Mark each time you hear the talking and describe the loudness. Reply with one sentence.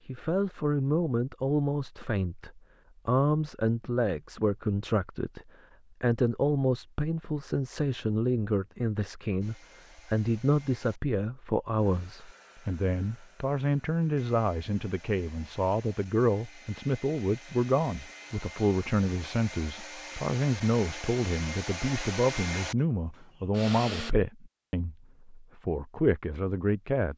You can hear the talking from 0.1 to 27.1 s, at a steady volume.